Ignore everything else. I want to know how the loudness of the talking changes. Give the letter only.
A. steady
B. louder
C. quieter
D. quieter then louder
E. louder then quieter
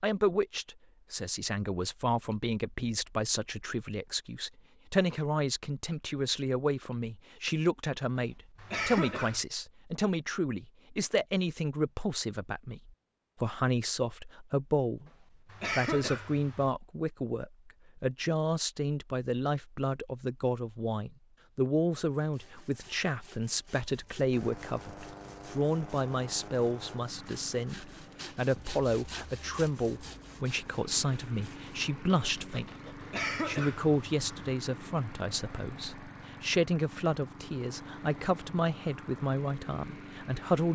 A.